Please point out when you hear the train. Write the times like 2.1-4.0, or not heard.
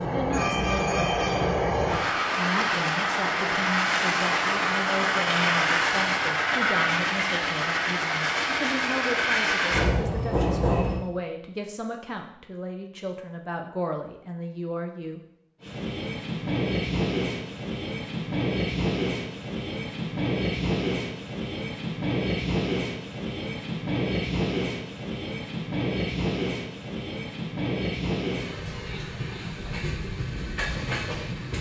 0.0-11.0, 15.6-31.5.